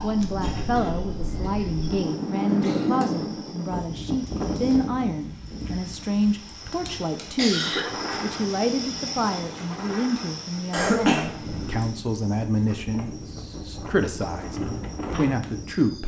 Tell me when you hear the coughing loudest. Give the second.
11 s.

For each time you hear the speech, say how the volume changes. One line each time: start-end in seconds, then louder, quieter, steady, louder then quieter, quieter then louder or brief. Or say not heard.
0.0-16.0 steady.